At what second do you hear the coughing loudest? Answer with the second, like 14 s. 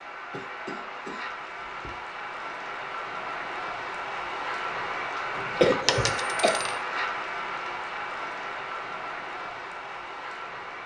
6 s.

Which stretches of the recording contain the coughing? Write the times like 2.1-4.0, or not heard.
0.3-1.9, 5.6-6.6.